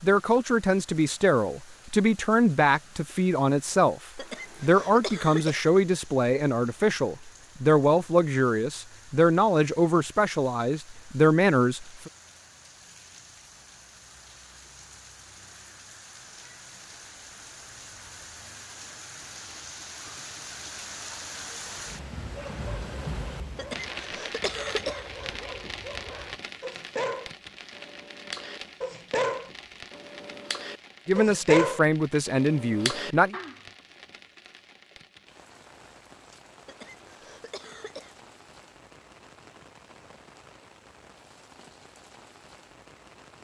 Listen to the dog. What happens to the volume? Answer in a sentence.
The loudness of the dog goes up.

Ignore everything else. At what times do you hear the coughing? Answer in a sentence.
You can hear the coughing from 4.2 to 5.7 s, from 23.6 to 25.4 s and from 36.6 to 38.1 s.